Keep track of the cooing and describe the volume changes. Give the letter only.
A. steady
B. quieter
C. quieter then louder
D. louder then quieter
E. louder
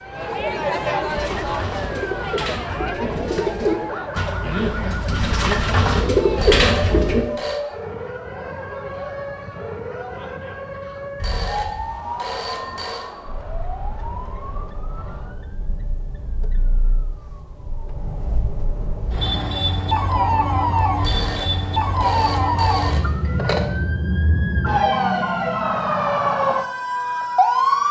E.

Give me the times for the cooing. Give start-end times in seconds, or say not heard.
1.1-7.2.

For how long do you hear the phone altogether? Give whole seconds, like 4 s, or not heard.
6 s.